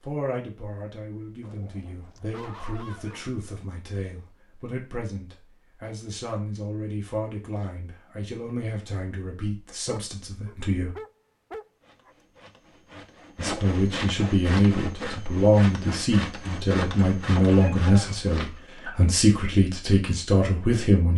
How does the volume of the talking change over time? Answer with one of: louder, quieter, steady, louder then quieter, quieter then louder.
louder.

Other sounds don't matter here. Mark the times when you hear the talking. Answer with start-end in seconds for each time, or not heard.
0.0-10.9, 13.3-21.1.